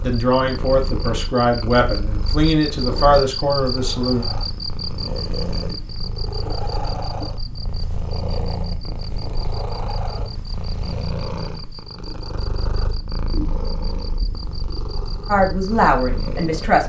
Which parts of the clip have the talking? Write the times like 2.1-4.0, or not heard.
0.0-4.2, 15.2-16.8.